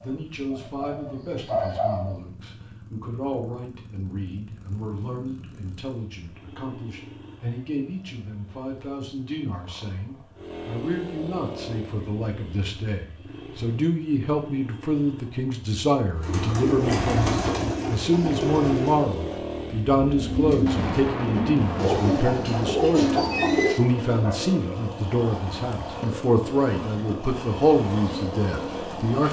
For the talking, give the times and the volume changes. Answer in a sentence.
The talking can be heard from 0.0 to 29.2 s, getting louder.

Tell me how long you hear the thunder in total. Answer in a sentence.
You can hear the thunder for 3 seconds altogether.